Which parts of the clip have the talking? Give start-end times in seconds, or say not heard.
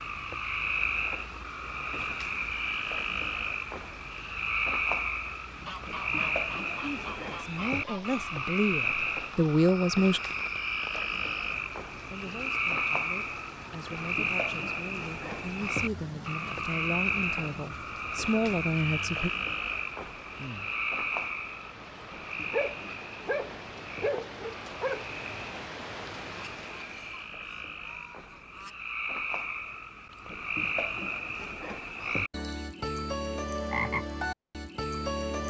6.8-10.2, 12.1-19.3.